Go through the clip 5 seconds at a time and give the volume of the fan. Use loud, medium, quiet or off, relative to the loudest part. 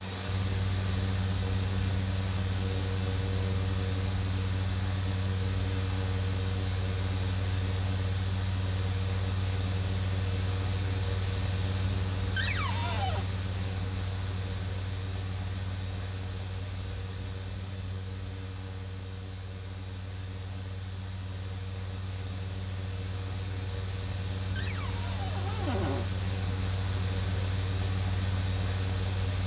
loud, loud, loud, medium, medium, loud.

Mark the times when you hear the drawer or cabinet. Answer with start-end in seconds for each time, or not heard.
12.3-13.2, 24.6-26.1.